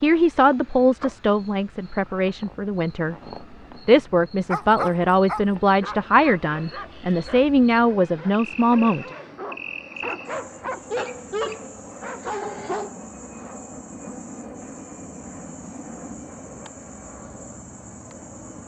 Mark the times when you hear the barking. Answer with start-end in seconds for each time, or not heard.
4.5-12.9.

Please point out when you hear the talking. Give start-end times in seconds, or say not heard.
0.0-3.1, 3.9-9.1.